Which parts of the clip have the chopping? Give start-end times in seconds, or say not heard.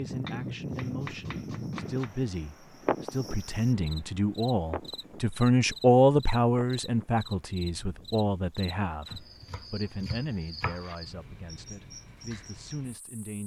0.2-2.1, 9.1-10.9.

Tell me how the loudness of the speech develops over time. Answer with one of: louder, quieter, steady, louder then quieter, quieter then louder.
louder then quieter.